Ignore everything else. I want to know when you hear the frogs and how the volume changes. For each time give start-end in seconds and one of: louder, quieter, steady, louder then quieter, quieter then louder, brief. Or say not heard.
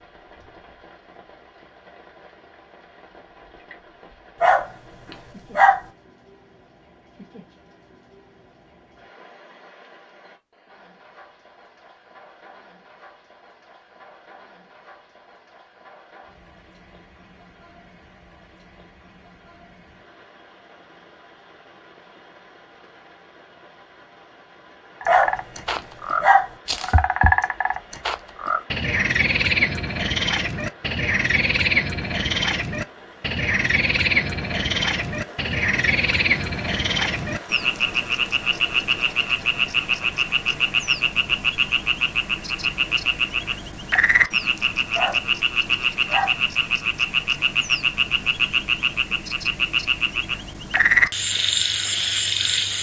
25.0-52.7 steady.